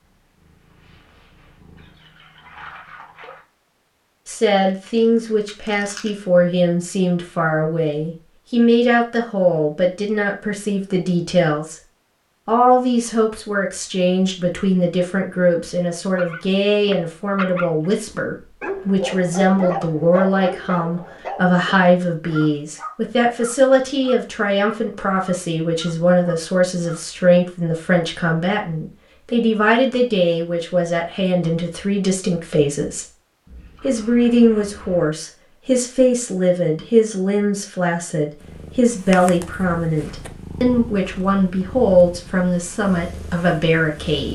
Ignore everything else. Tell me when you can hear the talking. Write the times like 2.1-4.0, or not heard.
4.2-11.8, 12.4-33.0, 33.8-44.2.